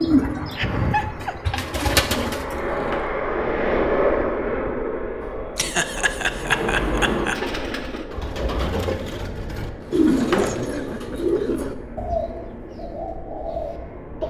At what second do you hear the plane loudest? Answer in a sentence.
The volume of the plane peaks at 4 seconds.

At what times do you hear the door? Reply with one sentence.
The door can be heard from 2.5 to 3.1 s, from 5.2 to 7.4 s and from 9.8 to 10.8 s.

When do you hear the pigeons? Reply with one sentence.
The pigeons can be heard from 0.0 to 2.6 s and from 7.3 to 14.2 s.